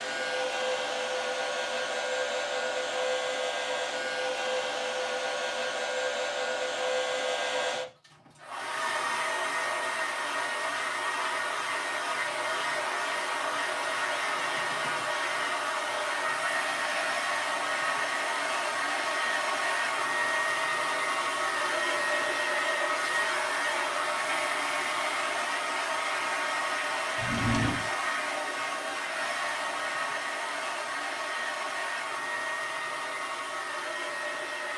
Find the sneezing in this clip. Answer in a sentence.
The sneezing can't be heard in this clip.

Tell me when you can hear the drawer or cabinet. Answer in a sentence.
You can hear the drawer or cabinet from 27.1 to 27.9 s.